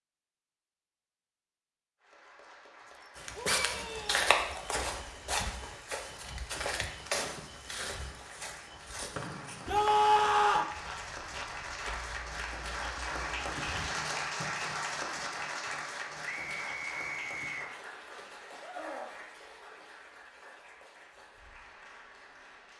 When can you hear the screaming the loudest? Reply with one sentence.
The volume of the screaming peaks at 10 seconds.